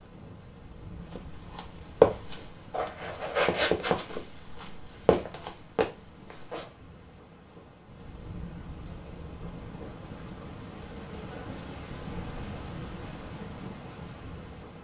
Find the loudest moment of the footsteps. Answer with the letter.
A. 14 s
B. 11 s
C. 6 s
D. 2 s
D.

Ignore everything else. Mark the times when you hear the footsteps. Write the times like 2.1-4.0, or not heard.
1.1-6.7.